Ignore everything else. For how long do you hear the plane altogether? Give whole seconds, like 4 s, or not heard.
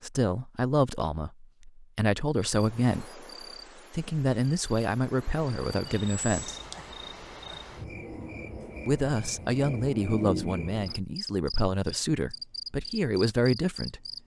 not heard.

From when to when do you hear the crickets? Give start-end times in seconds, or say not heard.
2.4-14.2.